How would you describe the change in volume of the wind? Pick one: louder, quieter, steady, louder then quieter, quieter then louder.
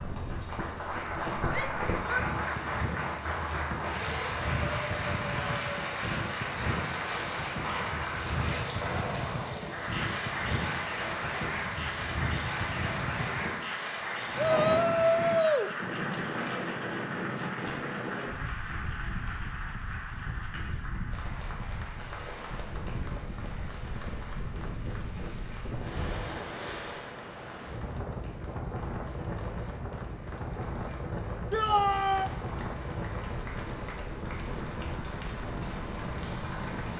steady.